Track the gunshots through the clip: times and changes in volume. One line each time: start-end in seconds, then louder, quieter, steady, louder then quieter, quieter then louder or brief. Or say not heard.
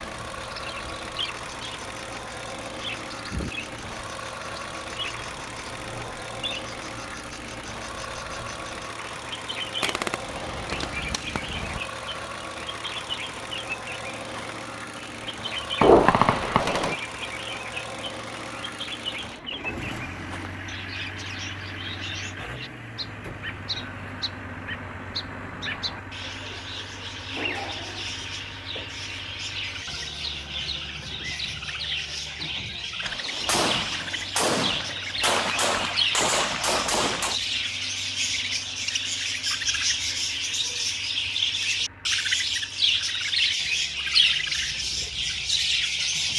9.8-11.8 brief
15.8-16.9 brief
33.0-37.4 steady.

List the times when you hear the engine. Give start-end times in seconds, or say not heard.
0.0-46.3.